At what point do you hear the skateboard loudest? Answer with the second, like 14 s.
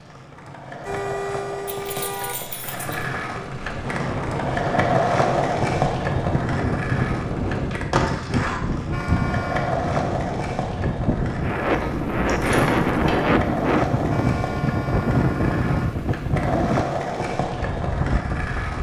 5 s.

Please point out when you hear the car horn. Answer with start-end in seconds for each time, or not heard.
0.8-2.4, 8.8-9.8, 14.1-15.9.